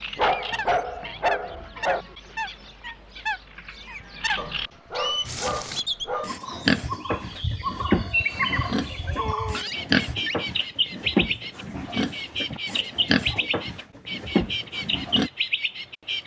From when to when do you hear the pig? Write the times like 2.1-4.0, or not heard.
5.2-15.3.